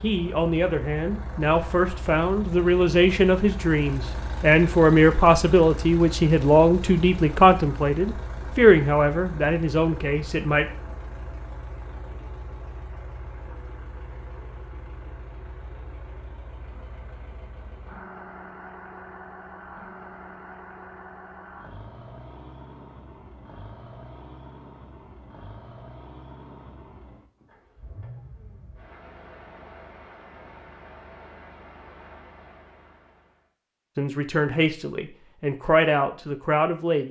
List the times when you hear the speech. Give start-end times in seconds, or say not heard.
0.0-10.7, 34.0-37.0.